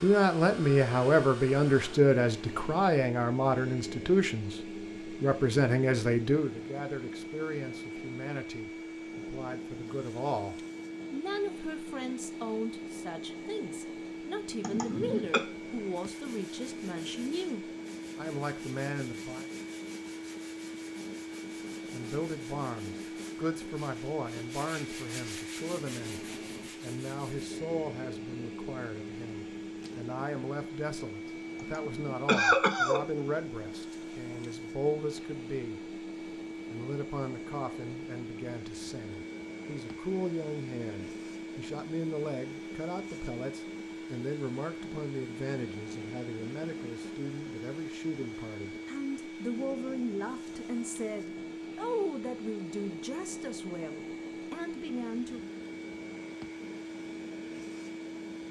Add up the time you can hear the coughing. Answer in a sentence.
You can hear the coughing for 2 seconds altogether.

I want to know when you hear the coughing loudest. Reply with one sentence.
The volume of the coughing peaks at 32 seconds.